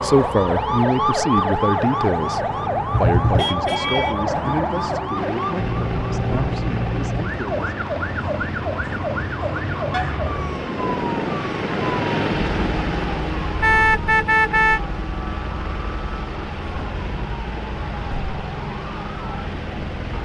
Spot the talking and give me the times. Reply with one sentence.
The talking can be heard from 0.0 to 7.8 s.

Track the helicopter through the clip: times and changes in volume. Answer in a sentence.
The helicopter can be heard from 5.2 to 20.1 s, getting louder then quieter.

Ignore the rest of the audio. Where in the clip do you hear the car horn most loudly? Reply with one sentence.
The loudest moment of the car horn is at 14 seconds.